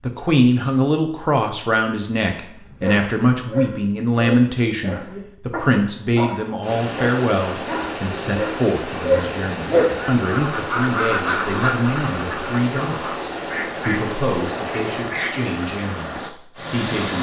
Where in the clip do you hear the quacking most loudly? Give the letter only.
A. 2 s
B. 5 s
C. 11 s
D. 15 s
C.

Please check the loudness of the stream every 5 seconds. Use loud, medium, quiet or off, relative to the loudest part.
off, loud, loud, loud.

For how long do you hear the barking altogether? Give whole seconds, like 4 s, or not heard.
7 s.